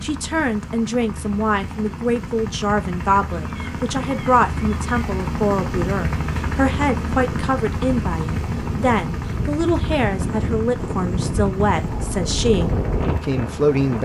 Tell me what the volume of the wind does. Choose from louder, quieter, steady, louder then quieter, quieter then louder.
louder.